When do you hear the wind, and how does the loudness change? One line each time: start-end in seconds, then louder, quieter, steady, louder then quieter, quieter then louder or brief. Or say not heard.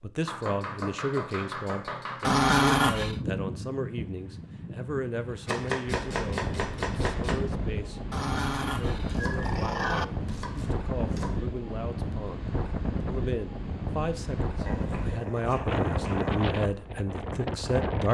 3.0-18.0 louder.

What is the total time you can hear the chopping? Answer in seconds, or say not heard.
8 s.